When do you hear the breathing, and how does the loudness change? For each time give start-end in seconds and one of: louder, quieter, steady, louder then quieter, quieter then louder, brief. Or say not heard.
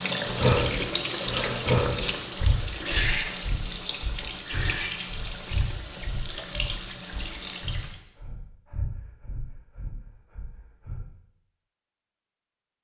0.2-11.0 quieter.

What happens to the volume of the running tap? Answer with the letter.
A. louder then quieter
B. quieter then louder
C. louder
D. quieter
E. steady
D.